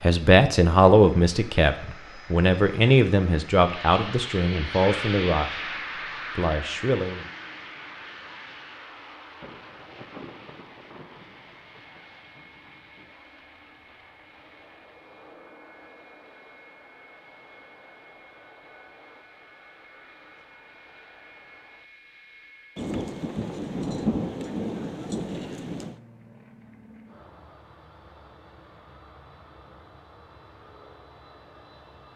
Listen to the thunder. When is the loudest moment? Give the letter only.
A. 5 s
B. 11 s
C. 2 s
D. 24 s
D.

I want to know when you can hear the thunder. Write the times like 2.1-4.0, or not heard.
9.4-13.2, 22.8-26.0.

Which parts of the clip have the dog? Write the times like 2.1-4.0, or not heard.
not heard.